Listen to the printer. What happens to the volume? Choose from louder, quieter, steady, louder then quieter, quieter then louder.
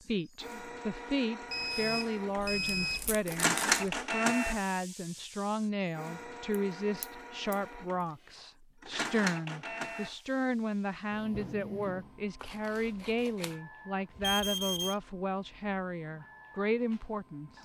quieter.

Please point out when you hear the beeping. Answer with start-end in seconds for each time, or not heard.
1.5-3.1, 14.2-14.9.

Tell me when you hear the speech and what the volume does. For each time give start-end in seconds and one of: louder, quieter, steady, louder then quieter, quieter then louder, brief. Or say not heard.
0.1-17.6 steady.